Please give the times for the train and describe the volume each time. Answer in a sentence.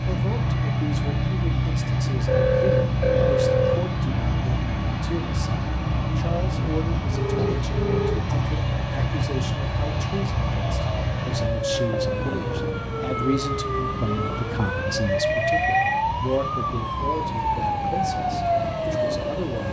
The train can be heard from 0.0 to 19.6 s, getting quieter.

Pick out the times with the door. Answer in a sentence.
You can't hear the door here.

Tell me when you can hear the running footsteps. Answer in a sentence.
You can't hear the running footsteps here.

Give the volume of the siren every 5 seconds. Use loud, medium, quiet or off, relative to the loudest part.
off, off, loud, loud.